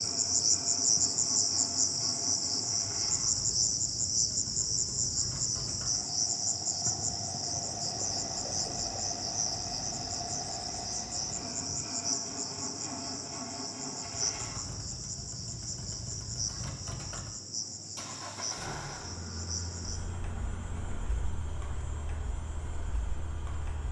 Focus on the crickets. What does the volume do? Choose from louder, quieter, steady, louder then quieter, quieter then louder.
quieter.